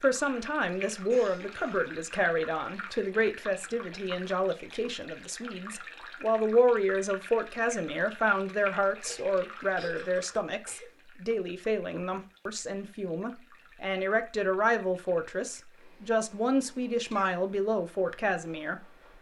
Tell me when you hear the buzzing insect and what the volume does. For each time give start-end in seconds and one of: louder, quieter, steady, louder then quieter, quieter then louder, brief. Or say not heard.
not heard.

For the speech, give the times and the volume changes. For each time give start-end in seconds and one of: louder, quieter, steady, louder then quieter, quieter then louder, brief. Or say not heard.
0.0-18.9 steady.